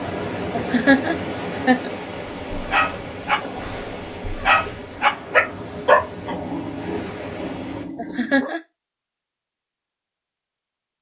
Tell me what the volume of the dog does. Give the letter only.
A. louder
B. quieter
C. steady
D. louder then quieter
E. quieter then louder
D.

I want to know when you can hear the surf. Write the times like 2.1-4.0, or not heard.
0.0-7.8.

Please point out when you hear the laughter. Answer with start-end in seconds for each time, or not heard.
0.5-1.9, 8.0-8.6.